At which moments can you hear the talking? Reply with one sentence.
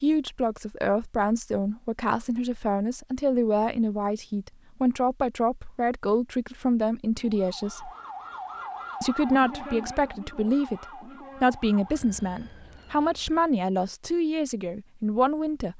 The talking can be heard from 0.0 to 7.9 s and from 9.0 to 15.7 s.